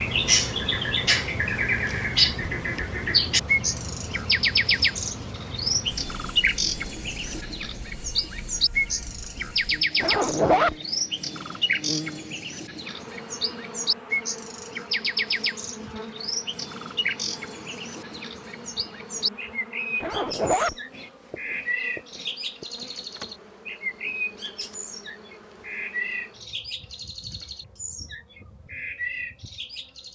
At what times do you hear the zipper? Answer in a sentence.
The zipper can be heard from 10.0 to 10.8 s and from 20.0 to 20.8 s.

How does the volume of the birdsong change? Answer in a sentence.
The volume of the birdsong goes down.